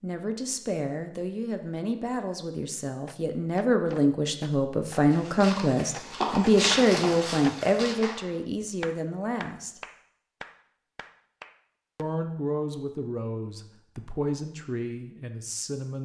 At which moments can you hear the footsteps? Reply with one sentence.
You can hear the footsteps from 5.1 to 8.0 s.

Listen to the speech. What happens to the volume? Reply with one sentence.
The loudness of the speech goes up, then down.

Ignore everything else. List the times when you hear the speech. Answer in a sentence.
The speech can be heard from 0.0 to 9.8 s and from 11.9 to 15.9 s.